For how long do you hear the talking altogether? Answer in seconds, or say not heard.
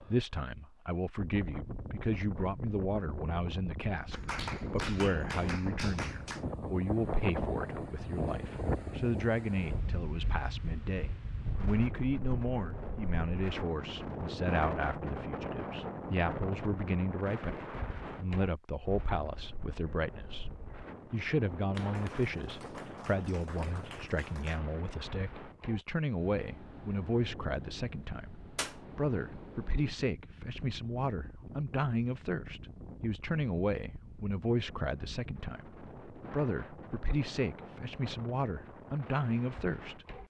40 s.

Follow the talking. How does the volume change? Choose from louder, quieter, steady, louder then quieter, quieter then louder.
steady.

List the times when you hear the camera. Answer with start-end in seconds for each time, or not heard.
not heard.